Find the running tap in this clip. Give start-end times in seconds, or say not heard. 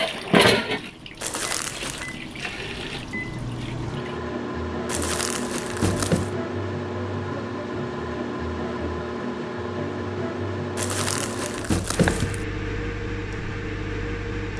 0.0-4.2.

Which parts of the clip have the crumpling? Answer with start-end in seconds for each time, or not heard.
1.2-2.2, 4.8-6.3, 10.8-12.4.